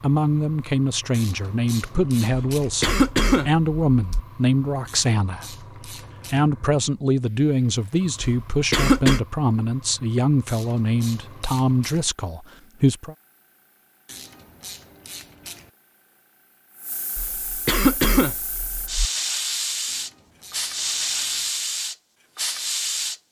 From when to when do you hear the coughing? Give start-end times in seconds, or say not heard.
2.3-4.2, 8.2-9.2, 17.1-19.1.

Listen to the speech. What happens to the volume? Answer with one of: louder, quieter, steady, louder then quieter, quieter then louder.
steady.